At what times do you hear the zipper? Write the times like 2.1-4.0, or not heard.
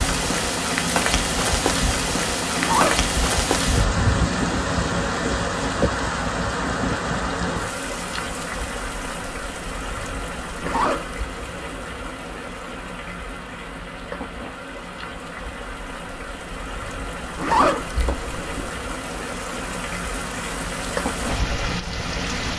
2.5-3.1, 10.6-11.2, 17.4-18.7.